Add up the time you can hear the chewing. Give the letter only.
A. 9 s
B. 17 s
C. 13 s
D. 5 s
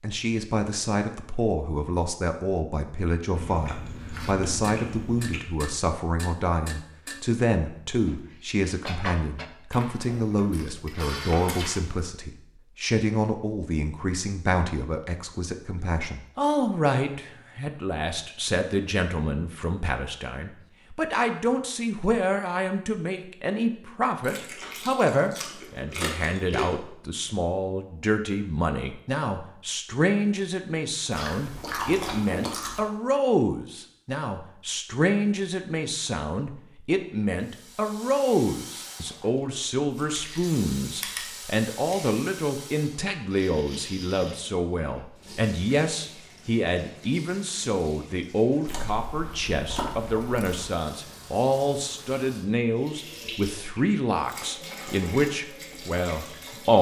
C.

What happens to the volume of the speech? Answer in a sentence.
The volume of the speech stays about the same.